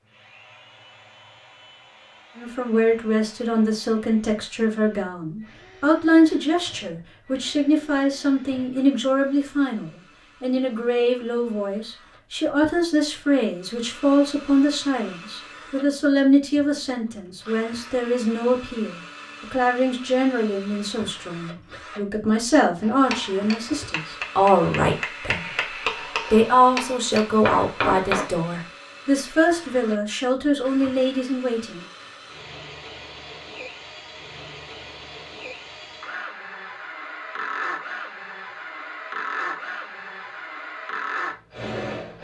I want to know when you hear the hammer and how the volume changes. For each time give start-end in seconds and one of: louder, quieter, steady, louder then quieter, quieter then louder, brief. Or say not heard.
22.8-28.2 louder.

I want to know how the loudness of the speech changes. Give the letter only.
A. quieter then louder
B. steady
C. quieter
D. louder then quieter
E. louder
B.